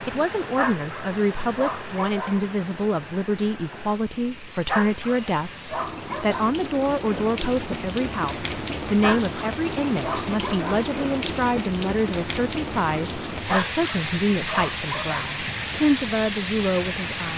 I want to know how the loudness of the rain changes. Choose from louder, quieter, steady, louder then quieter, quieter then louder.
louder.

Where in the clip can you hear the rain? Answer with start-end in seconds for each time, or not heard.
0.0-17.3.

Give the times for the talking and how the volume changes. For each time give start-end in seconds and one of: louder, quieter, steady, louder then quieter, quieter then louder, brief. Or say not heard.
0.0-17.3 steady.